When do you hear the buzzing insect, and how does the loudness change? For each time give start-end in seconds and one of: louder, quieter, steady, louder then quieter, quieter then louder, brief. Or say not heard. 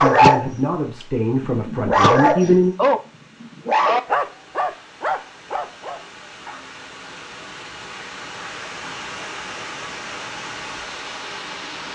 not heard.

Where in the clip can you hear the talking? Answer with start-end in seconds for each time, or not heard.
0.0-2.8.